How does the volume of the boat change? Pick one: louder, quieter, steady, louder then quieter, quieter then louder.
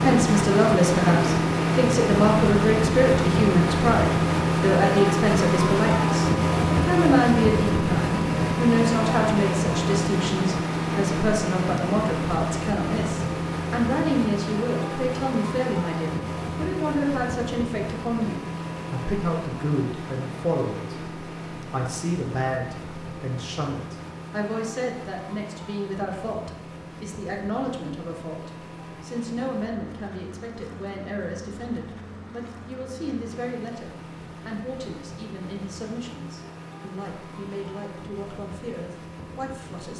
quieter.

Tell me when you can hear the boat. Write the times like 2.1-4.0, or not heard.
0.0-39.9.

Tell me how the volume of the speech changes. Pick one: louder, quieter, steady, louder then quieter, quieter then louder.
quieter.